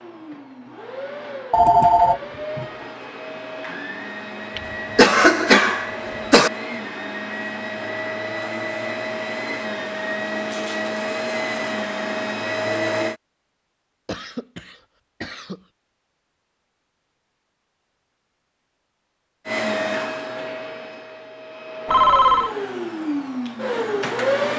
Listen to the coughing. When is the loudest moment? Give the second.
5 s.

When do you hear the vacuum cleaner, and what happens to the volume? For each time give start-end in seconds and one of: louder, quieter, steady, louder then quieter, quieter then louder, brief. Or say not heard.
0.0-13.2 louder
19.4-24.5 quieter then louder.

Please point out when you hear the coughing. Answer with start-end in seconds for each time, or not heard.
4.5-6.5, 14.1-15.6.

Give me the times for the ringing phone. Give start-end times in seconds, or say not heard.
1.5-2.6, 21.9-22.6.